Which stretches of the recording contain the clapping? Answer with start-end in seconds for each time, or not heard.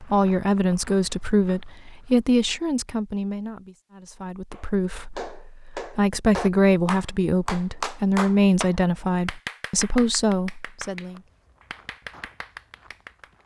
4.5-13.3.